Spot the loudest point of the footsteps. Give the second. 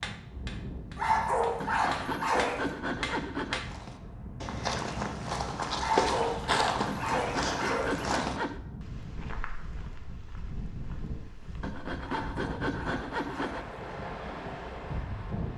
6 s.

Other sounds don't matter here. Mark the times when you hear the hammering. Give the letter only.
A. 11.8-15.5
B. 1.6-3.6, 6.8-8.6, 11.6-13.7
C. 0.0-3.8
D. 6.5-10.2
C.